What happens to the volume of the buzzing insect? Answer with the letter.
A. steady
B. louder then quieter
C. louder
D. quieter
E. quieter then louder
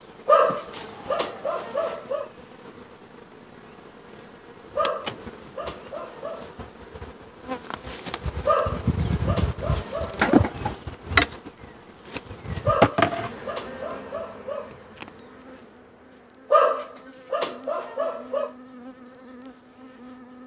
B.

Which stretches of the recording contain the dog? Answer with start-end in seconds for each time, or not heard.
0.2-2.2, 4.8-6.5, 8.4-10.5, 12.7-14.7, 16.5-18.5.